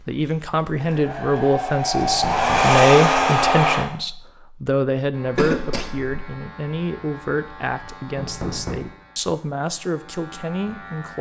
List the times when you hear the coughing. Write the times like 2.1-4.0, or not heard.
5.3-6.2.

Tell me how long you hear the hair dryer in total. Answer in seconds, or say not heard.
4 s.